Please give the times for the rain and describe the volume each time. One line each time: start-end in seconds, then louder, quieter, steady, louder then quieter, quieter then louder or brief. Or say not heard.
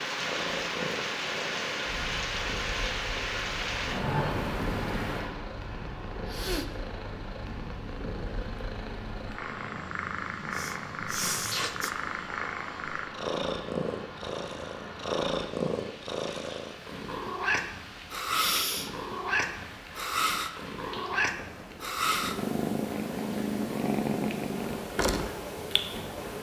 0.0-26.3 quieter.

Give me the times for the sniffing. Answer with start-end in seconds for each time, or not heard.
6.2-6.7, 10.5-11.9, 18.3-18.9.